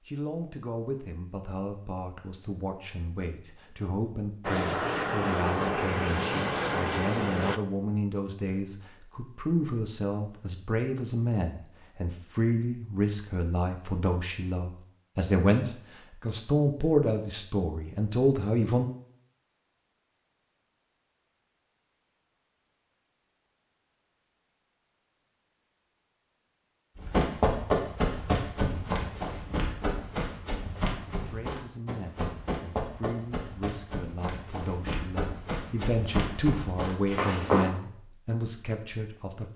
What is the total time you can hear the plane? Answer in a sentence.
The plane can be heard for 3 seconds in total.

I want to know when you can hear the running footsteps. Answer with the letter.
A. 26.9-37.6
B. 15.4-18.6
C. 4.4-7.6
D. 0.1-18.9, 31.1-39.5
A.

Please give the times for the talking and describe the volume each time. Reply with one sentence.
You can hear the talking from 0.1 to 18.9 s, getting louder; and from 31.1 to 39.5 s, getting louder.